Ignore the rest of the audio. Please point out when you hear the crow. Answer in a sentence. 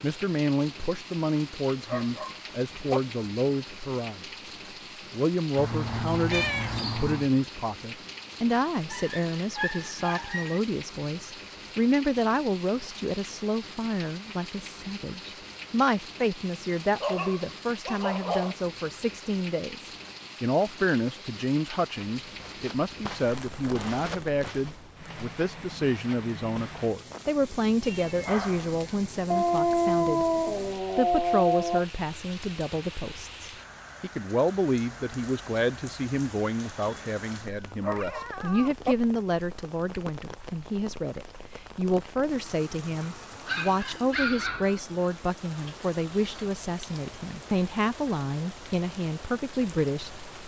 The crow can't be heard in this clip.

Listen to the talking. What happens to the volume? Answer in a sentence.
The loudness of the talking stays about the same.